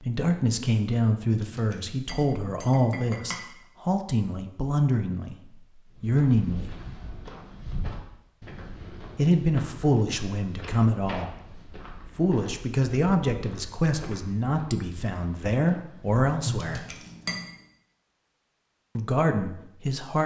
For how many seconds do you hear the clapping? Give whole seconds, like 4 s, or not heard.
not heard.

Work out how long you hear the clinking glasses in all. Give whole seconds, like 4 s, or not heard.
3 s.